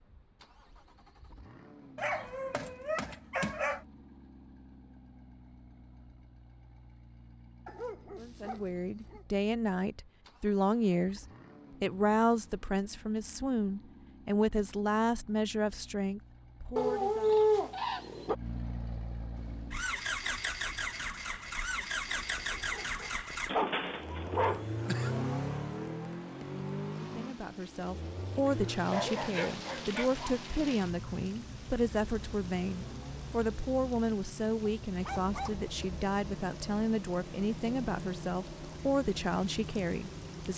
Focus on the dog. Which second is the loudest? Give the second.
17 s.